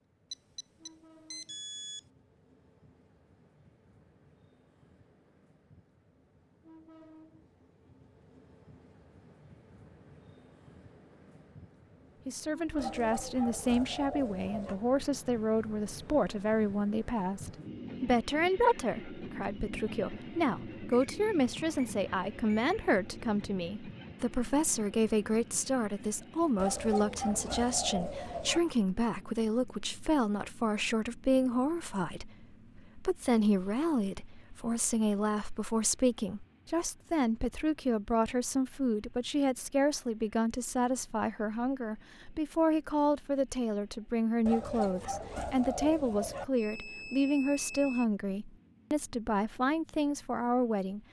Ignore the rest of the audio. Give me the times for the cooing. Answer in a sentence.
You can hear the cooing from 12.8 to 14.8 s, from 26.6 to 28.6 s and from 44.5 to 46.5 s.